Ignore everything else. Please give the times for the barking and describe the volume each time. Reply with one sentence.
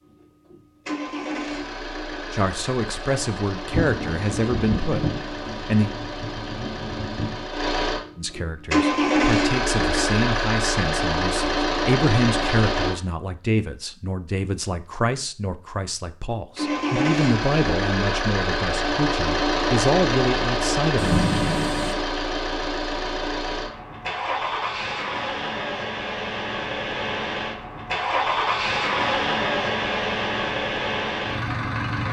The barking can't be heard in this clip.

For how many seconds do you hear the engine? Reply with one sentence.
You can hear the engine for 28 seconds altogether.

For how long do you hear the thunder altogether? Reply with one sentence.
You can hear the thunder for 5 seconds altogether.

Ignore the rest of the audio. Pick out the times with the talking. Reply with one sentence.
You can hear the talking from 2.3 to 5.9 s and from 8.2 to 21.2 s.